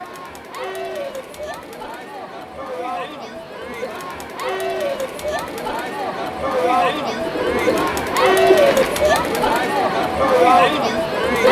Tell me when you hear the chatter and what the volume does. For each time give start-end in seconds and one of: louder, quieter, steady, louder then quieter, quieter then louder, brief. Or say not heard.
0.0-11.4 louder.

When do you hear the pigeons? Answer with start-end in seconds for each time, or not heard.
7.2-9.1.